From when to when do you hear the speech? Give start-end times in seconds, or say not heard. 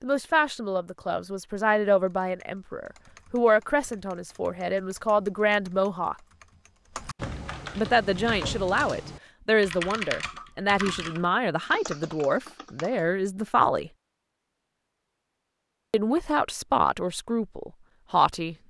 0.0-6.2, 7.8-13.9, 15.9-18.6.